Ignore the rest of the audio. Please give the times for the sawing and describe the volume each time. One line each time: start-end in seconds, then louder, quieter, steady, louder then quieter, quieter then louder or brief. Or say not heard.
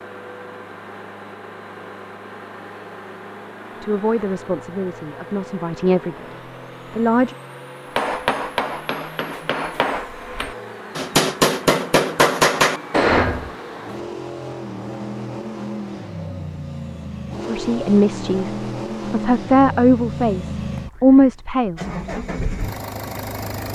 not heard.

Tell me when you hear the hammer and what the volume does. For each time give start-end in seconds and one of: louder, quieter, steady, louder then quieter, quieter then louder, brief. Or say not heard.
8.0-13.5 louder.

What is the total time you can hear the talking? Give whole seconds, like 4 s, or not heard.
8 s.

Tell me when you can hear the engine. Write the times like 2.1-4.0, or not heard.
0.0-23.7.